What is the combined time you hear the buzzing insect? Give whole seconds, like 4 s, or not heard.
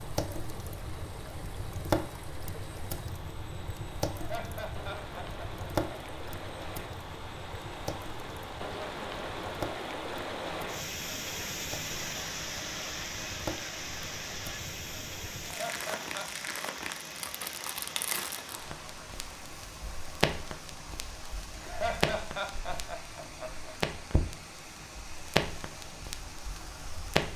not heard.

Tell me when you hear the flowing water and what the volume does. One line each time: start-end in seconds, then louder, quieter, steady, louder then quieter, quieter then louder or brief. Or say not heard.
0.0-27.3 louder then quieter.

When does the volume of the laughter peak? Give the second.
22 s.